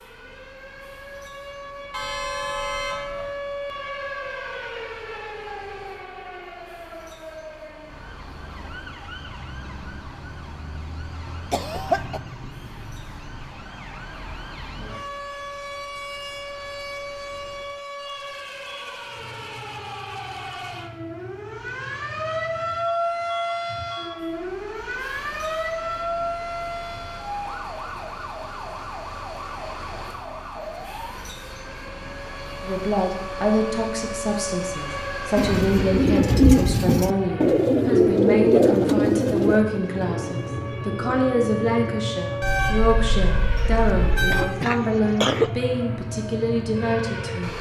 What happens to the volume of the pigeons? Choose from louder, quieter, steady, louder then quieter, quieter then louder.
quieter.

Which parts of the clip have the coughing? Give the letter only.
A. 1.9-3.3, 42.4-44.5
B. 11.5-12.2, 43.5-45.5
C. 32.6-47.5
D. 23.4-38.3
B.